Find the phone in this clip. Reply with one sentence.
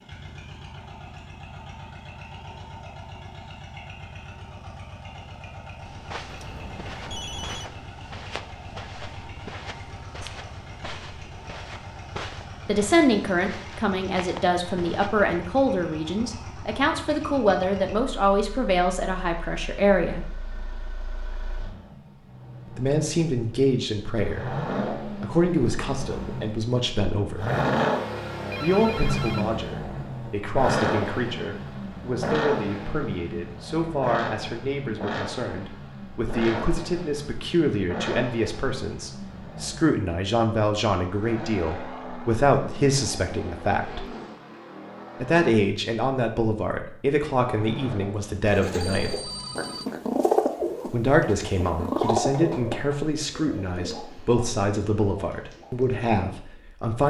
You can hear the phone from 6.2 to 7.7 s, from 28.4 to 29.5 s and from 48.8 to 49.9 s.